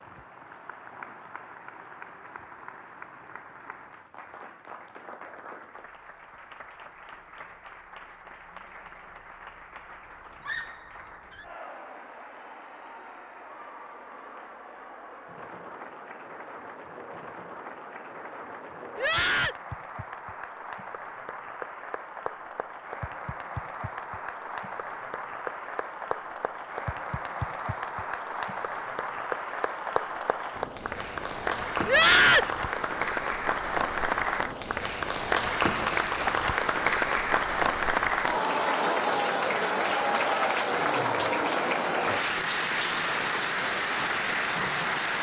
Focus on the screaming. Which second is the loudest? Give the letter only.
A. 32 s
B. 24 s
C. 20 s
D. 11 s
A.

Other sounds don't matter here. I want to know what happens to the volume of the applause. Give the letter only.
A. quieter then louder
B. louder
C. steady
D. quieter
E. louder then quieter
B.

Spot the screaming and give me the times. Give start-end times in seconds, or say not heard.
10.4-11.4, 18.9-19.6, 31.9-32.5.